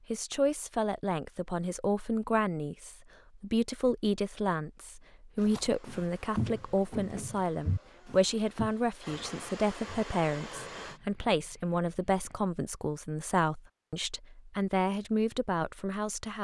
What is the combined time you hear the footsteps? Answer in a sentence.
You can hear the footsteps for 7 seconds altogether.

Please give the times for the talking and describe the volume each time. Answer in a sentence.
You can hear the talking from 0.1 to 16.3 s, at a steady volume.